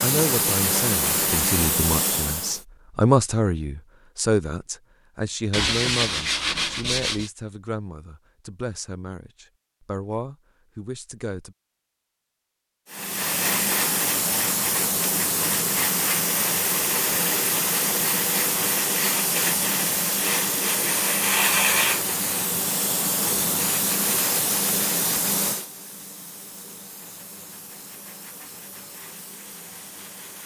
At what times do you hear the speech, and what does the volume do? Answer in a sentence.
The speech can be heard from 0.0 to 11.6 s, getting louder then quieter.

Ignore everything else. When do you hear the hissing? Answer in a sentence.
The hissing can be heard from 0.0 to 2.6 s and from 12.9 to 30.4 s.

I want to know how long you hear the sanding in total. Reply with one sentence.
You can hear the sanding for 2 seconds altogether.